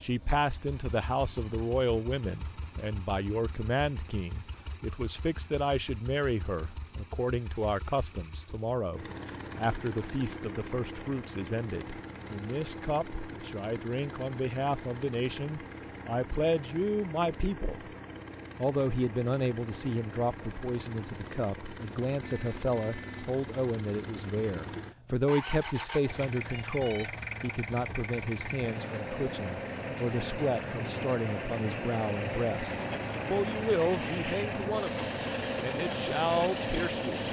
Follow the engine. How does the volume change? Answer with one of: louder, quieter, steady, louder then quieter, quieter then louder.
louder.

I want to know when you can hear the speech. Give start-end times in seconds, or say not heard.
0.0-17.9, 18.6-37.2.